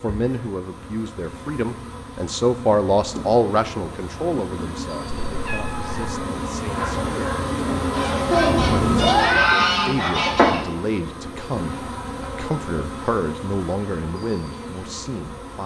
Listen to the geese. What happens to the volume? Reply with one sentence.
The loudness of the geese goes up.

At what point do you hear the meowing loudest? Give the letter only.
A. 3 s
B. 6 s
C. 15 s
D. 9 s
D.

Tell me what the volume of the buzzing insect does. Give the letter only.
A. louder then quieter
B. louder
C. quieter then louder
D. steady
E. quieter
A.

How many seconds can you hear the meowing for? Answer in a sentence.
The meowing can be heard for 2 seconds in total.